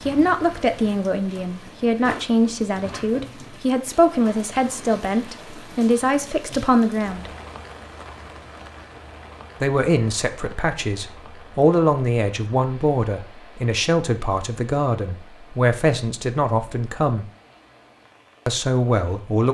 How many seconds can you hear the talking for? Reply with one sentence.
The talking can be heard for 16 seconds in total.